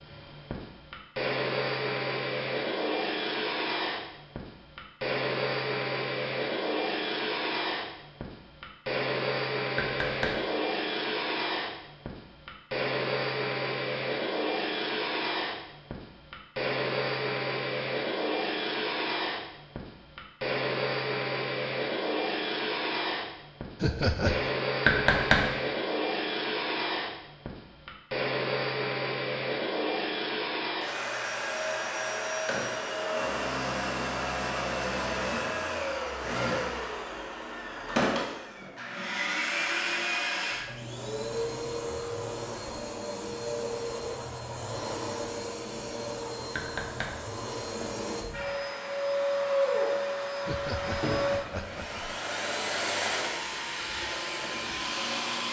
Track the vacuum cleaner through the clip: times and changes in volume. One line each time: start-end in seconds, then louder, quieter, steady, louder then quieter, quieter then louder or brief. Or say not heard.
0.0-55.4 steady.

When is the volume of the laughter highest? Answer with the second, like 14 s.
24 s.